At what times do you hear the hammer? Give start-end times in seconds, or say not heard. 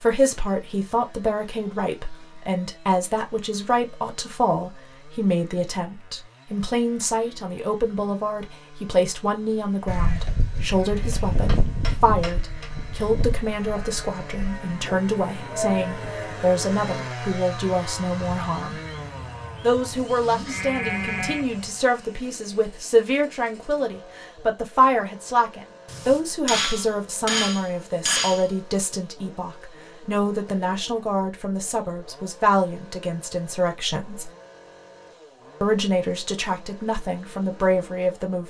11.1-12.7, 25.9-28.6.